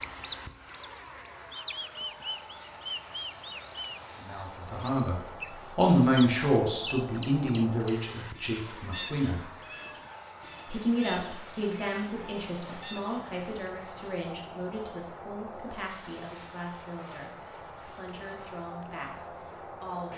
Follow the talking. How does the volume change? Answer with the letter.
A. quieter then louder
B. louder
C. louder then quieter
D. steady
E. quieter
E.